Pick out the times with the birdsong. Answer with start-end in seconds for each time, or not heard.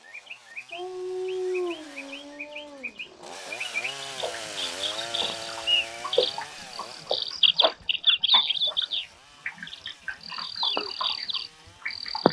0.0-12.2.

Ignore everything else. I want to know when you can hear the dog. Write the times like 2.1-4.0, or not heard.
0.7-3.4.